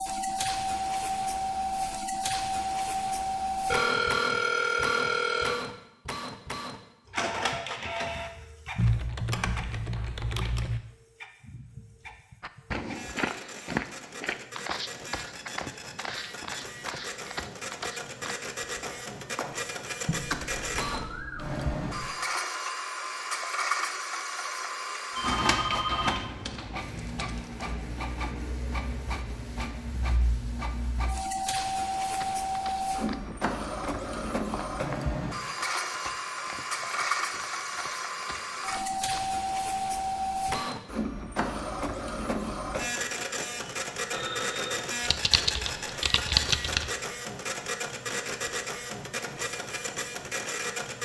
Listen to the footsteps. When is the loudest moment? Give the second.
14 s.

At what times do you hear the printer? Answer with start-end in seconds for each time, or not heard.
0.0-51.0.